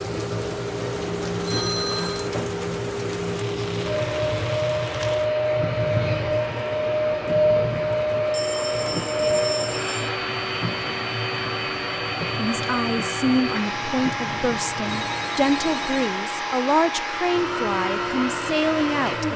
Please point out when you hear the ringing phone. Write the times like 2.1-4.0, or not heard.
1.4-2.3, 8.3-10.1, 14.8-16.2.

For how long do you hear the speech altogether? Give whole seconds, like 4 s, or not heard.
7 s.